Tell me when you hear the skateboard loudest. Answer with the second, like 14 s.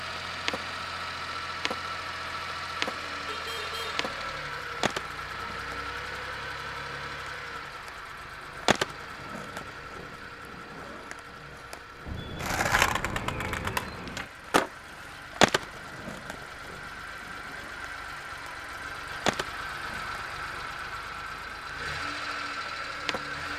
15 s.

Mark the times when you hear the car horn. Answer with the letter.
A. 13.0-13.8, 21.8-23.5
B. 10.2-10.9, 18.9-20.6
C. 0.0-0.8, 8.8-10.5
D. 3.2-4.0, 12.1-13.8
D.